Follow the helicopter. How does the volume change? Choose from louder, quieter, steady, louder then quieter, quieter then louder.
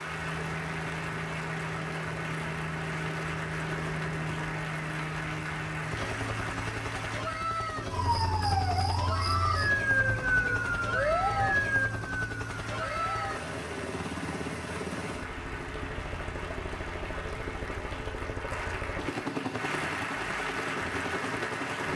steady.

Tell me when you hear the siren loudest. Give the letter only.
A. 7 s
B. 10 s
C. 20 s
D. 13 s
B.